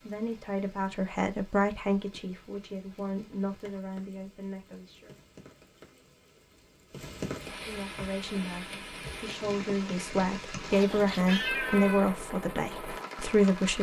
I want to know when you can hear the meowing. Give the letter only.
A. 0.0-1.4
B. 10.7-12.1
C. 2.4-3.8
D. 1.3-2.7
B.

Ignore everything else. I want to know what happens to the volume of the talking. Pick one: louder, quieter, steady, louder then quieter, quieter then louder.
quieter then louder.